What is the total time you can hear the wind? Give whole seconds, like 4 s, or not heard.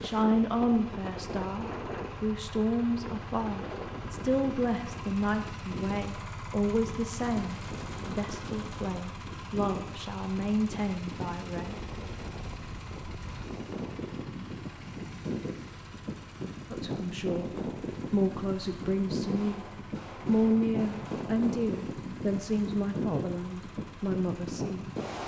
25 s.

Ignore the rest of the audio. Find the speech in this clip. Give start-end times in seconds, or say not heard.
0.0-11.8, 16.7-17.5, 18.1-19.6, 20.2-25.2.